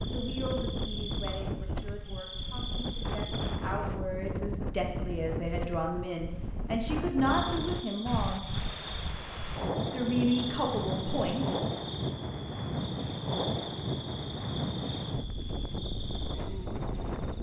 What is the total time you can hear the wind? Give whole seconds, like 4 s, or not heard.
17 s.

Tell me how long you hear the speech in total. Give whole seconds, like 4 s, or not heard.
10 s.